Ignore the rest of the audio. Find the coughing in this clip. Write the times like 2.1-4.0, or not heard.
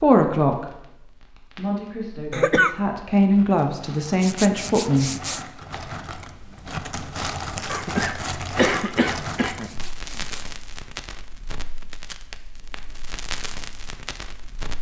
2.3-2.8, 7.7-9.7.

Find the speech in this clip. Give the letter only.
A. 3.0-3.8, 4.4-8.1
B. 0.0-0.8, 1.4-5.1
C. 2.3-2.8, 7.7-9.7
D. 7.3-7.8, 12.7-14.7
B.